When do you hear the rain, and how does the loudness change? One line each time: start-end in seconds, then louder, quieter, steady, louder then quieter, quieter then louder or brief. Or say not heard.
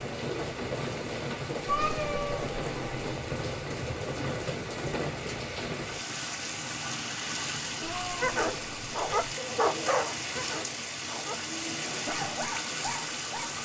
0.0-13.5 steady.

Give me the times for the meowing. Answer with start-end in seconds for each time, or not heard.
1.6-3.0, 7.8-9.3.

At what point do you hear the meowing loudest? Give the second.
2 s.